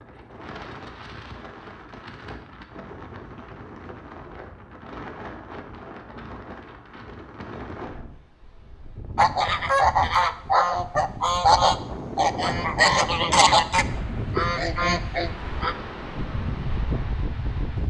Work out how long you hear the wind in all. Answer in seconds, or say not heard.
18 s.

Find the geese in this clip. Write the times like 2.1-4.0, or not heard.
9.2-15.8.